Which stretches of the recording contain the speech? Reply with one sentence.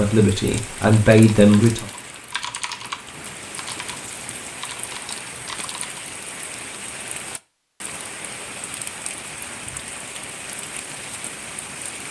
You can hear the speech from 0.0 to 1.9 s.